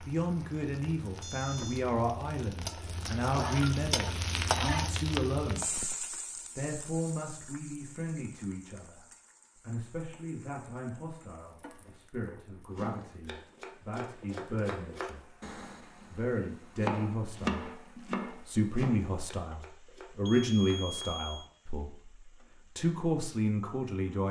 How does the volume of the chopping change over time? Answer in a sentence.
The loudness of the chopping goes up, then down.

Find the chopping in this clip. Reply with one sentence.
The chopping can be heard from 12.8 to 21.1 s.